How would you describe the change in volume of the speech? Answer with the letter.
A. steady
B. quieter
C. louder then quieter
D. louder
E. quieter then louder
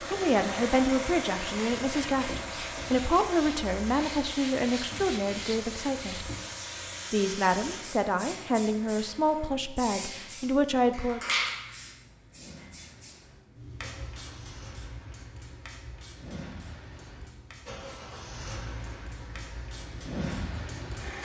A.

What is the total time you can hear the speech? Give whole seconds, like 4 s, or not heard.
10 s.